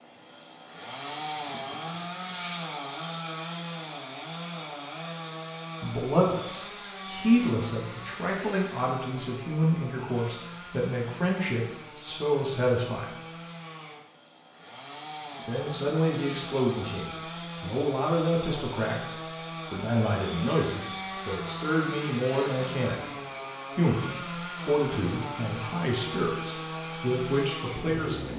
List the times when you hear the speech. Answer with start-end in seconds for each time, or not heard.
5.8-13.2, 15.4-23.1, 23.8-28.3.